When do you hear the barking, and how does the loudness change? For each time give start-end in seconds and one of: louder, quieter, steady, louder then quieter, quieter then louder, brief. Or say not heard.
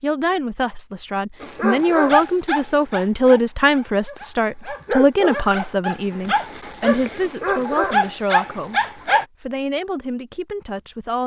1.4-9.2 quieter then louder.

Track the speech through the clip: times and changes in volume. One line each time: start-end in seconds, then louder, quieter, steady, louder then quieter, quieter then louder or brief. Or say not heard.
0.0-11.2 quieter.